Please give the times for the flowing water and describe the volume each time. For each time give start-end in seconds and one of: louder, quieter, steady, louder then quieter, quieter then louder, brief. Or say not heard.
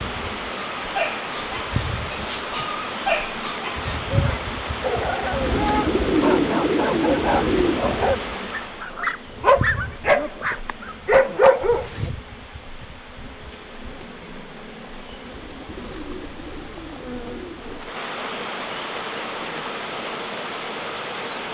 0.0-21.4 quieter then louder.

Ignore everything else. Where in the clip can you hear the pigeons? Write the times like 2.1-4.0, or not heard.
5.4-8.0, 15.2-17.9.